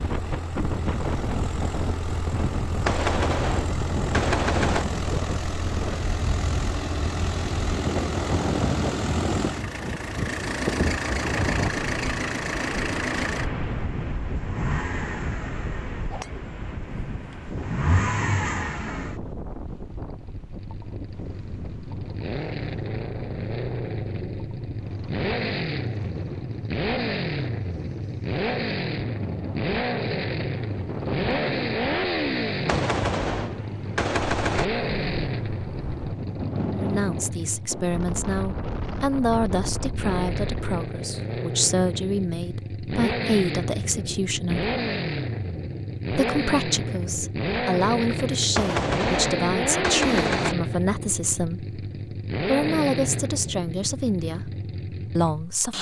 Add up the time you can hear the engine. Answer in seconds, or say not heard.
56 s.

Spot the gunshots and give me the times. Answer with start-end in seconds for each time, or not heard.
2.9-4.8, 32.6-34.6, 48.5-50.5.